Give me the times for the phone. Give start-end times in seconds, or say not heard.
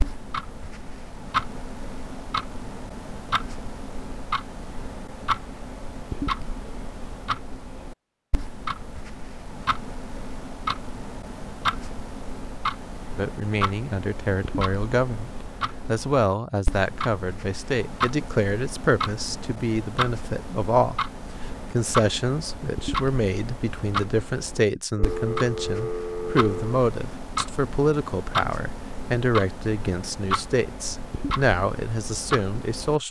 24.9-26.8.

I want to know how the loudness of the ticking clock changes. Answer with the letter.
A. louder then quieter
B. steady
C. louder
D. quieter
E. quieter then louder
B.